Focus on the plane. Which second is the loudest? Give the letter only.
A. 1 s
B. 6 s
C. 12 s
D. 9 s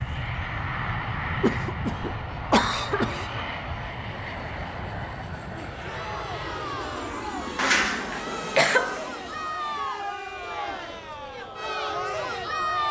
A.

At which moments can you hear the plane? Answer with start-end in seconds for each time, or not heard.
0.0-12.8.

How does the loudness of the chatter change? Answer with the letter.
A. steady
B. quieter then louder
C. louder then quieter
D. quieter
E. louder
E.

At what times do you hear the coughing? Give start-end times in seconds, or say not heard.
1.4-3.4, 7.5-9.0.